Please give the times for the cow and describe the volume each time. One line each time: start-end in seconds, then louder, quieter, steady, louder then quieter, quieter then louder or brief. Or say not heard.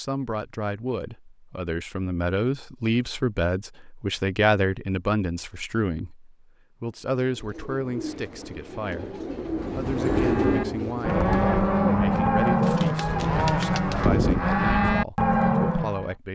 9.6-16.1 louder.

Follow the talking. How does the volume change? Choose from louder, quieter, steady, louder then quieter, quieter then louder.
quieter.